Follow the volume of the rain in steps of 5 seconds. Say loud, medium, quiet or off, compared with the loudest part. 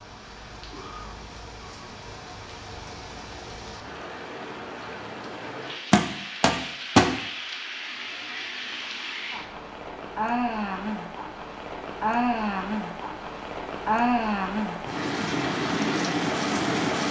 quiet, medium, loud, loud.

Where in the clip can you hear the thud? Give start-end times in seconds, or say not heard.
5.9-7.1.